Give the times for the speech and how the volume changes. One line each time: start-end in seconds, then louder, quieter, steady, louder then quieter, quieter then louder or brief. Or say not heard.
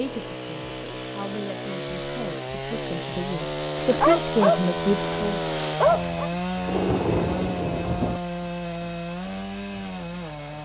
0.0-5.4 louder.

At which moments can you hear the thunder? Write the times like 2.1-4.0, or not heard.
6.7-8.2.